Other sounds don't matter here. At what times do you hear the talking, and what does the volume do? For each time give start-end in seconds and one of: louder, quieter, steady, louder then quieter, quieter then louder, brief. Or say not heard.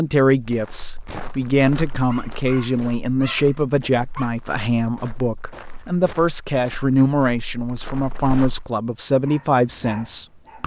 0.0-10.6 steady.